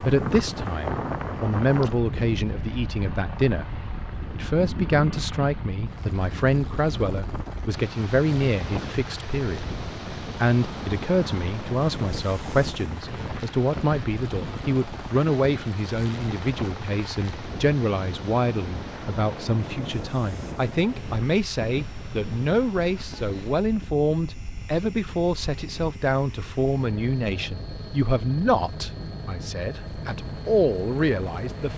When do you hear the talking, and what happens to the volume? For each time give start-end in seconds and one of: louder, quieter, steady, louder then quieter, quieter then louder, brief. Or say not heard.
0.0-31.7 steady.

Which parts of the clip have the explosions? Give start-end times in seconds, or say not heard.
not heard.